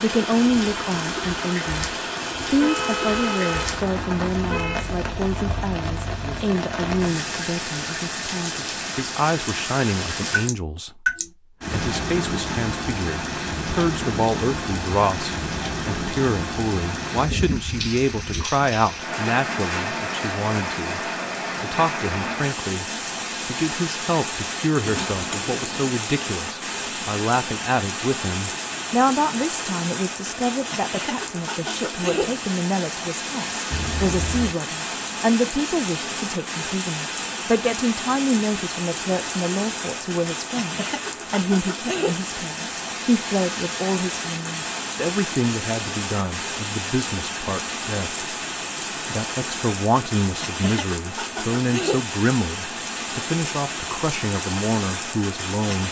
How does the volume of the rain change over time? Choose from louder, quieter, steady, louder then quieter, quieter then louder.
steady.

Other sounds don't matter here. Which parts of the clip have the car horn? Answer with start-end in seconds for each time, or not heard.
2.5-4.9, 33.7-34.5.